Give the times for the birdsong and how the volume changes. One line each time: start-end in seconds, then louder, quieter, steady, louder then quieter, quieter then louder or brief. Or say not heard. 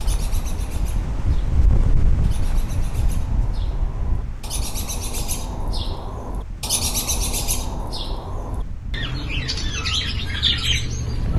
0.0-11.3 louder.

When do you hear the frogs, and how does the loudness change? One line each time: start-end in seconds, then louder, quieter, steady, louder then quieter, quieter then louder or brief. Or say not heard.
not heard.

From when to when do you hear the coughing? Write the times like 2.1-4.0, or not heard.
not heard.